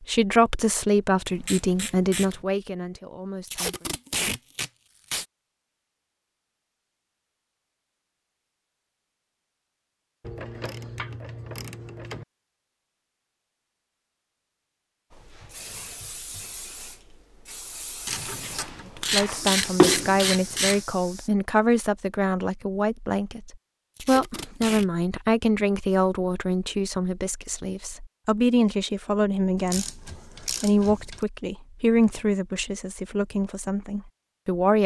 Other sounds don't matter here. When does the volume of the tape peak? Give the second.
4 s.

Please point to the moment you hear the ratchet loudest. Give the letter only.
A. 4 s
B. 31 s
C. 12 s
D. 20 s
D.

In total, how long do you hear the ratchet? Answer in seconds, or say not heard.
8 s.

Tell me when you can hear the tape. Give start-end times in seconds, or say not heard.
3.5-5.2, 23.9-24.9.